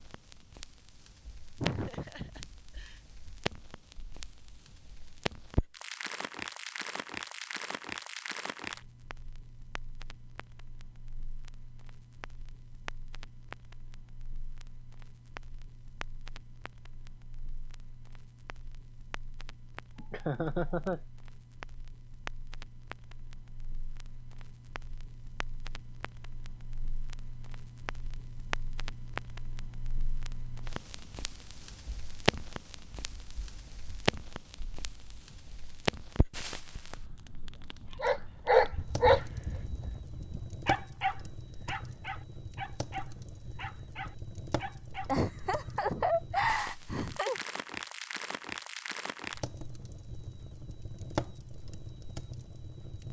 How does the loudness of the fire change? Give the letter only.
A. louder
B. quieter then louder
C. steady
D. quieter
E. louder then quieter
B.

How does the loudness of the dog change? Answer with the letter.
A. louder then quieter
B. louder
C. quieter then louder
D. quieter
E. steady
D.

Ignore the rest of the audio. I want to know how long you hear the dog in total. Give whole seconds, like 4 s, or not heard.
7 s.